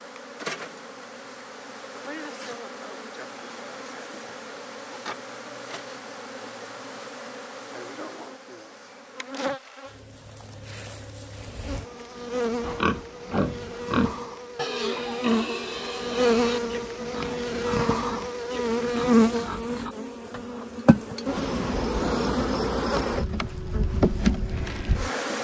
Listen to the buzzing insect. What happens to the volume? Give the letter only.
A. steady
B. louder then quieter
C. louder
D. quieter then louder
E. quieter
C.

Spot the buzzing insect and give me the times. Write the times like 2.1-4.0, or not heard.
0.0-25.4.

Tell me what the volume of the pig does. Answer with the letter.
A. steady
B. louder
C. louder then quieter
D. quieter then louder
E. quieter
E.